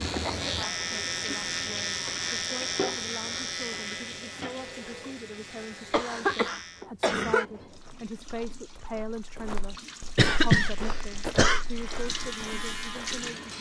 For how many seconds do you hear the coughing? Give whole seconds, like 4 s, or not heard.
4 s.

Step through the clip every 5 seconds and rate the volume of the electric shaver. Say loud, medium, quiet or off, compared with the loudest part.
loud, medium, medium.